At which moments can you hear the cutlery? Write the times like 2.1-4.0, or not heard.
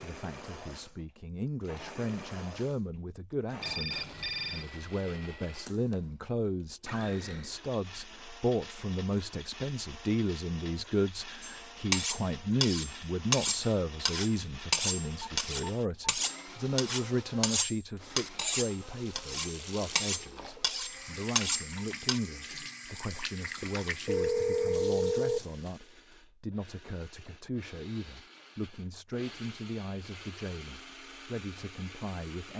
11.4-22.2.